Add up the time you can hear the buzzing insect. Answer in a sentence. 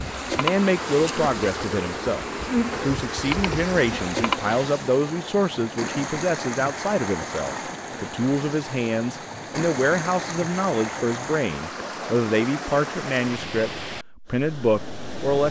You can hear the buzzing insect for 5 seconds altogether.